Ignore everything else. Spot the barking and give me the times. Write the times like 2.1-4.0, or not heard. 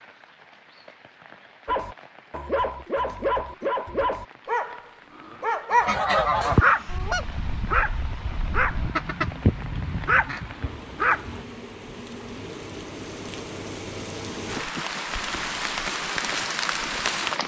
1.6-11.4.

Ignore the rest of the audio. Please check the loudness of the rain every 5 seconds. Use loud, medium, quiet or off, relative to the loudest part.
quiet, quiet, medium, loud.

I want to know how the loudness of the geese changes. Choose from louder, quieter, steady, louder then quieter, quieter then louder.
quieter then louder.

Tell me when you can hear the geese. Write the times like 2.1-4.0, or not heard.
5.7-10.4.